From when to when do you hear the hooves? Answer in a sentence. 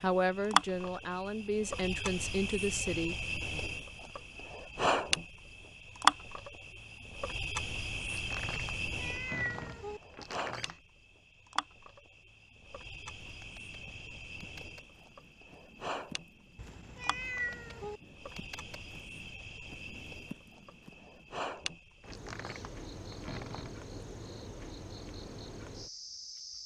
The hooves can be heard from 13.2 to 21.5 s.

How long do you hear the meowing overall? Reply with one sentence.
You can hear the meowing for 3 seconds altogether.